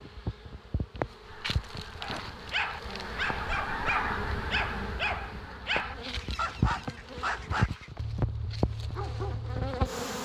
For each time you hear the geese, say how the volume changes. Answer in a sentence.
You can hear the geese from 1.2 to 8.0 s, getting louder then quieter.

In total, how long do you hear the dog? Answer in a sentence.
The dog can be heard for 8 seconds in total.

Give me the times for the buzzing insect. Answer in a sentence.
You can hear the buzzing insect from 0.0 to 10.2 s.